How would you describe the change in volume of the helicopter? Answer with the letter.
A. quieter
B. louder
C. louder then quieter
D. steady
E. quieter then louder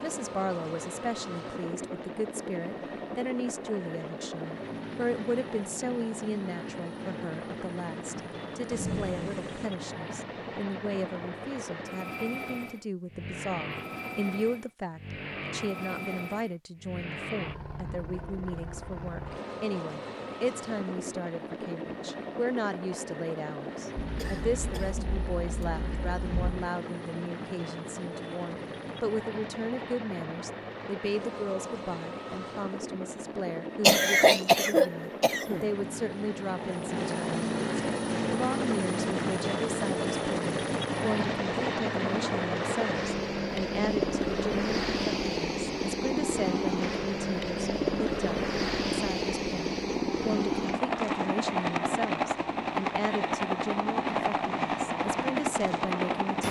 B.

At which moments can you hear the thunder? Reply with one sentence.
You can hear the thunder from 8.7 to 9.7 s.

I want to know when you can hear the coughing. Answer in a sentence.
The coughing can be heard from 23.9 to 26.7 s and from 33.9 to 35.6 s.